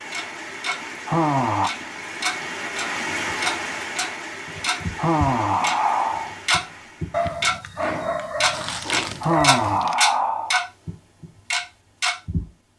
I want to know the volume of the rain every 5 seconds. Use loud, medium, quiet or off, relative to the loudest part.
loud, medium, off.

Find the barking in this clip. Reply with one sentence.
The barking can be heard from 7.1 to 9.9 s.